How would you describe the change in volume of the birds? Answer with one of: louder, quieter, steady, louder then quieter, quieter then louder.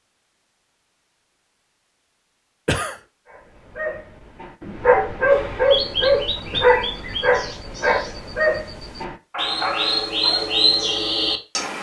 quieter then louder.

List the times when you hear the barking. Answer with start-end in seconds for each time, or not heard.
3.2-10.6.